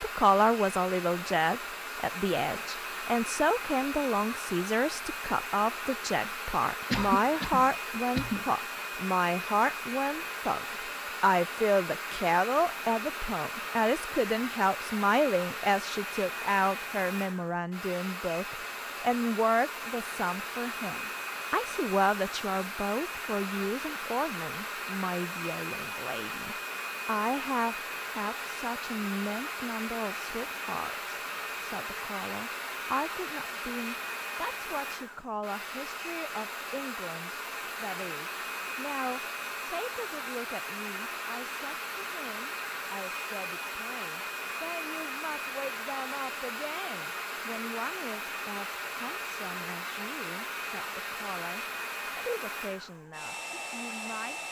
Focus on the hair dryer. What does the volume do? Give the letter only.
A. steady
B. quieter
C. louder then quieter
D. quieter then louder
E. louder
A.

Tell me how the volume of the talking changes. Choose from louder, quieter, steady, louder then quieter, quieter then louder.
quieter.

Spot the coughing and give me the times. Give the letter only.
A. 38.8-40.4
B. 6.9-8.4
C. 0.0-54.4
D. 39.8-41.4
B.